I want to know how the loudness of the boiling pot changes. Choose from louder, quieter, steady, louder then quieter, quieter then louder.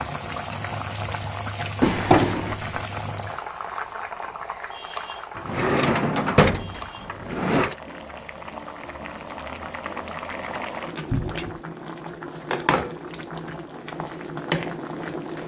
quieter then louder.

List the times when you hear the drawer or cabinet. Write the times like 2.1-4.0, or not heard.
1.8-2.5, 5.3-7.8, 11.1-11.5.